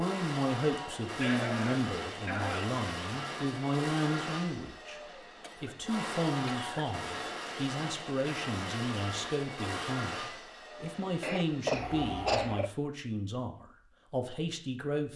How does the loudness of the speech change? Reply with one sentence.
The loudness of the speech stays about the same.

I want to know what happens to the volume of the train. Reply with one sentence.
The volume of the train stays about the same.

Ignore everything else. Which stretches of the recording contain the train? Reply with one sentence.
The train can be heard from 0.0 to 12.7 s.